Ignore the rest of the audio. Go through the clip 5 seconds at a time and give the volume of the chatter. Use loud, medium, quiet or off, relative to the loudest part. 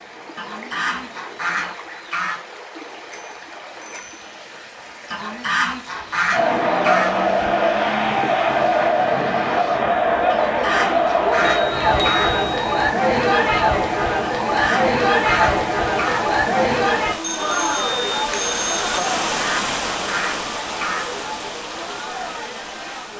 off, loud, loud, loud, quiet.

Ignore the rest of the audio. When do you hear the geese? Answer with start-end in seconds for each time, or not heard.
0.3-2.4, 5.1-7.1, 10.3-12.3, 14.4-16.2, 19.3-21.1.